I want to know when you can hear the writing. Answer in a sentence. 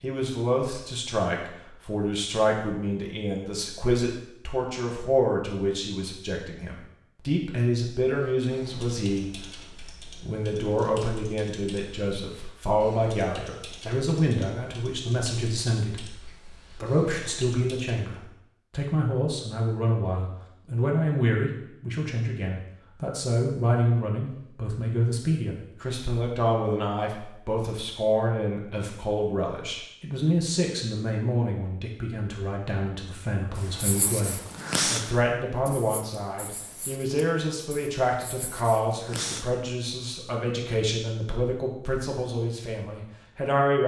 The writing can be heard from 33.5 to 39.5 s.